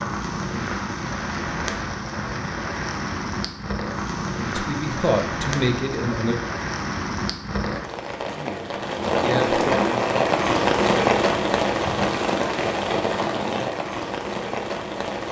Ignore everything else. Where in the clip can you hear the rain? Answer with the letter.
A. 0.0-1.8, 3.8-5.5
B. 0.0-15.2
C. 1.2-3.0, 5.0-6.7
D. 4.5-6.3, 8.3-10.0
B.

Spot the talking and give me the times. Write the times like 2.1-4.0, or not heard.
4.5-6.3, 8.3-10.0.